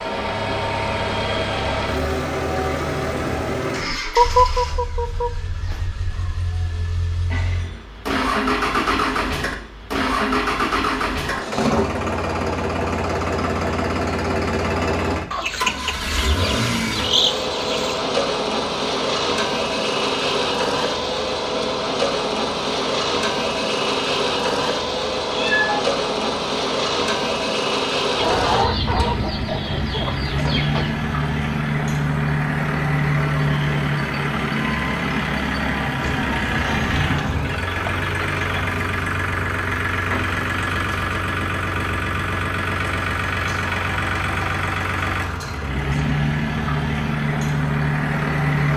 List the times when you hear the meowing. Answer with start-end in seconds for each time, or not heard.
6.0-7.7, 25.3-25.9, 36.0-37.5.